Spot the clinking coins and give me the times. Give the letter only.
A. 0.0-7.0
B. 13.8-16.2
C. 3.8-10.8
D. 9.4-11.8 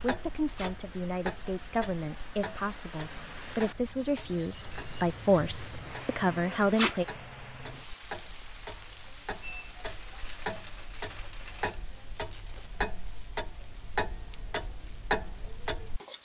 D.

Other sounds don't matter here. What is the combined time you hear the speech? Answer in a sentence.
The speech can be heard for 7 seconds in total.